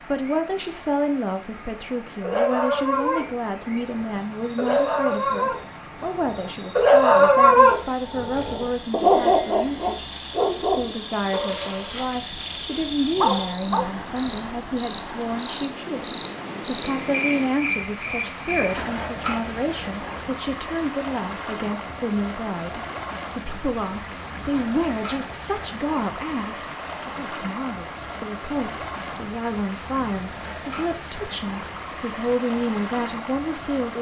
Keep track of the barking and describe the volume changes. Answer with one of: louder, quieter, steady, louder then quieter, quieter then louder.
louder then quieter.